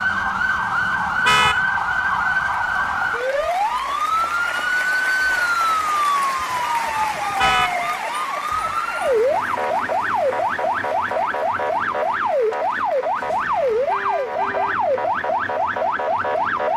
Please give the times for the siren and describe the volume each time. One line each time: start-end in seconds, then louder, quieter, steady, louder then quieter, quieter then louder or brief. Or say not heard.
0.0-16.7 steady.